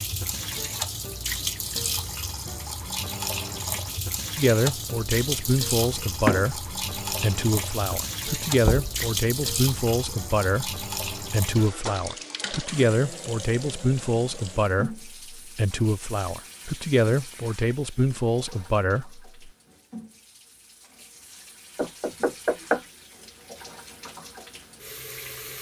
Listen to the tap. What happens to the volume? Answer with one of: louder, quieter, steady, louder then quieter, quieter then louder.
quieter.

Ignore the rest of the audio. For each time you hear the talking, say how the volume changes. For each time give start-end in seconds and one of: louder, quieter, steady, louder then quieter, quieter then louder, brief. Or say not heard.
4.3-19.2 steady.